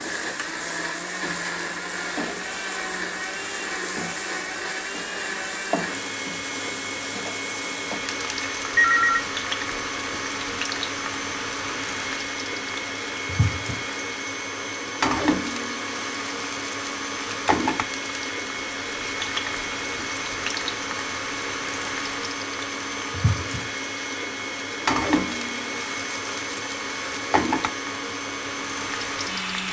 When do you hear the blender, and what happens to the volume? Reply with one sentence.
You can hear the blender from 0.0 to 29.6 s, at a steady volume.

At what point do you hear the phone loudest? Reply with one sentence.
The volume of the phone peaks at 9 seconds.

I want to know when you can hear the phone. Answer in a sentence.
You can hear the phone from 8.8 to 9.2 s and from 17.3 to 18.1 s.